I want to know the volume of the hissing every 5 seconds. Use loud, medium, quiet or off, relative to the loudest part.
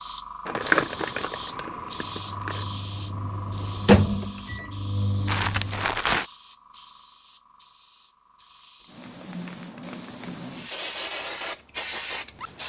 loud, medium, loud.